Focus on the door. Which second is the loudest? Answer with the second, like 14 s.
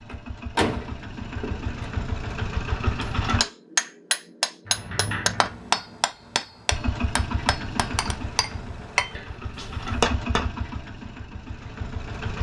1 s.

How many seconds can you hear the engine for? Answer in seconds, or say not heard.
9 s.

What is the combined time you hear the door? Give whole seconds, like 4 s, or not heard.
4 s.